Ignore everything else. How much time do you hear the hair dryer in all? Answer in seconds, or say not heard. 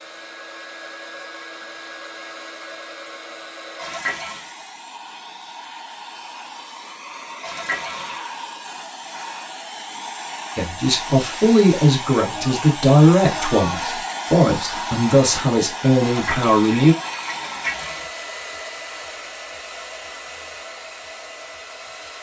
22 s.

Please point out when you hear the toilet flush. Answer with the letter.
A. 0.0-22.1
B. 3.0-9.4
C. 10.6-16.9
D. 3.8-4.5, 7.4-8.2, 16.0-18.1
D.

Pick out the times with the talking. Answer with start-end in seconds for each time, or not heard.
10.6-16.9.